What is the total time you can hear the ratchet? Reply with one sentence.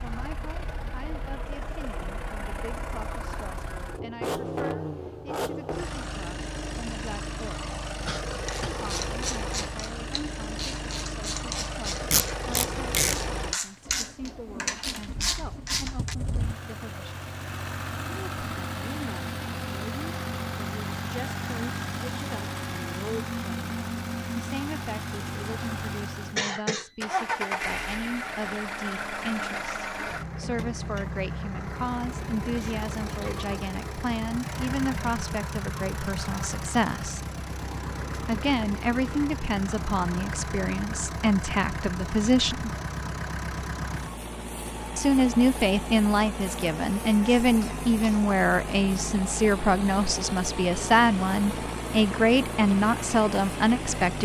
The ratchet can be heard for 8 seconds in total.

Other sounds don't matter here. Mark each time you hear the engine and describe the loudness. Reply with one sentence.
You can hear the engine from 0.0 to 54.2 s, at a steady volume.